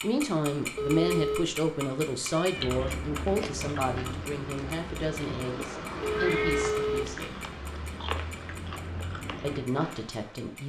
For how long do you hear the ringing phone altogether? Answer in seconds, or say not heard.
2 s.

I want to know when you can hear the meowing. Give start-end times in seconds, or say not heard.
2.3-2.8, 6.1-7.0.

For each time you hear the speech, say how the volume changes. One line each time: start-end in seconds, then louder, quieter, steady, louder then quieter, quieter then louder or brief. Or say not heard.
0.0-7.5 quieter
9.4-10.6 brief.